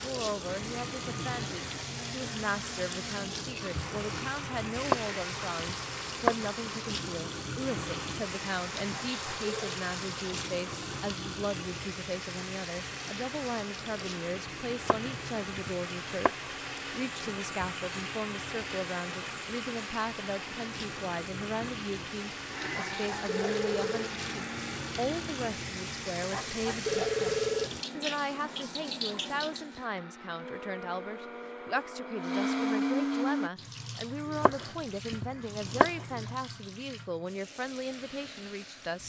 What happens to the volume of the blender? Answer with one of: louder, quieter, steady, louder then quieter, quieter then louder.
louder.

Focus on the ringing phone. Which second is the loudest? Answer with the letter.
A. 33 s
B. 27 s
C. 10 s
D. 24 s
B.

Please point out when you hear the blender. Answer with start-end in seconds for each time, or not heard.
0.0-33.5.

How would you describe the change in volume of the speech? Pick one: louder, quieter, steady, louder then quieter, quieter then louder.
steady.